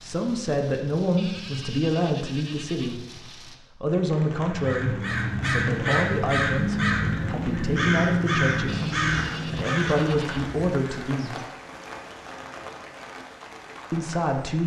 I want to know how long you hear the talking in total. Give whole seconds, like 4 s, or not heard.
11 s.